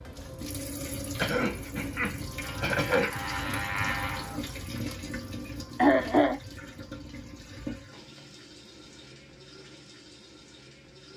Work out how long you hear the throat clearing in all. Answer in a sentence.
You can hear the throat clearing for 3 seconds altogether.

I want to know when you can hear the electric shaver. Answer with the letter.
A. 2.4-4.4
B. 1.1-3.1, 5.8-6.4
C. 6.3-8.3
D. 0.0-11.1
A.